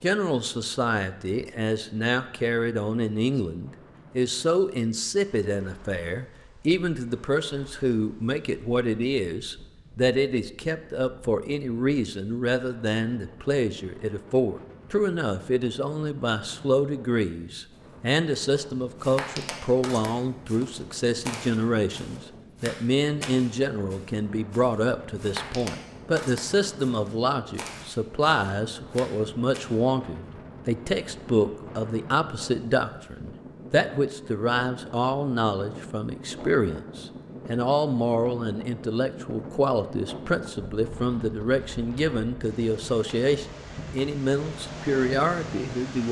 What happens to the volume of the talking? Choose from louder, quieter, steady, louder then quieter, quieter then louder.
steady.